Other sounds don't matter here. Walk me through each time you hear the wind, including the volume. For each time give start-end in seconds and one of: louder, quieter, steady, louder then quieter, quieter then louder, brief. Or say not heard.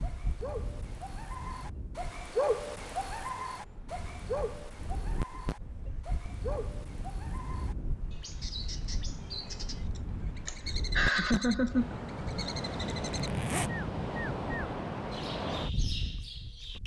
0.0-16.8 louder.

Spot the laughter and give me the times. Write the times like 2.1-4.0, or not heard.
10.4-12.0.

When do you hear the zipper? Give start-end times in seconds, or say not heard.
13.2-13.8.